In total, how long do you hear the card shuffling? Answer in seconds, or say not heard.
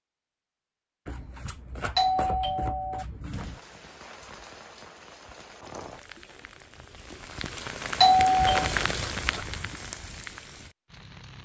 3 s.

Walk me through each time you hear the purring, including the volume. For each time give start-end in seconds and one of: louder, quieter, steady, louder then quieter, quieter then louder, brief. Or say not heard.
not heard.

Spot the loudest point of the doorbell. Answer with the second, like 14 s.
8 s.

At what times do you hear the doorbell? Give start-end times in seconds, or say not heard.
1.9-3.0, 8.0-8.7.